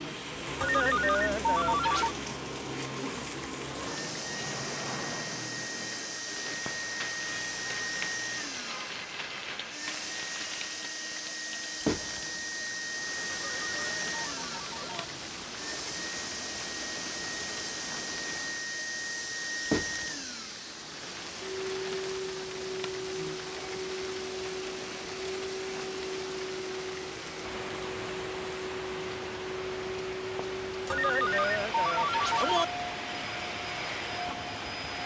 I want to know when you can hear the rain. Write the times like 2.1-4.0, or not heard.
0.0-35.0.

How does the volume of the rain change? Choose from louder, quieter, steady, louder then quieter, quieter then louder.
steady.